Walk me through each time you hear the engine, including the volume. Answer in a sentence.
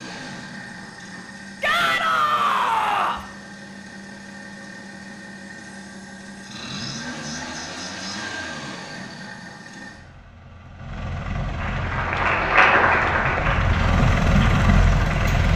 The engine can be heard from 0.0 to 15.5 s, getting louder.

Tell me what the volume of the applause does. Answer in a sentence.
The volume of the applause goes up, then down.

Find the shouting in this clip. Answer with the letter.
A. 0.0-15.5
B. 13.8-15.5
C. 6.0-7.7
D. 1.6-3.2
D.